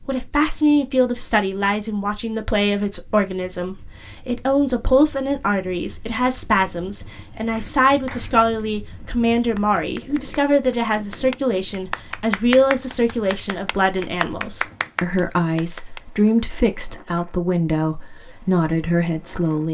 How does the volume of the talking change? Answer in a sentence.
The loudness of the talking stays about the same.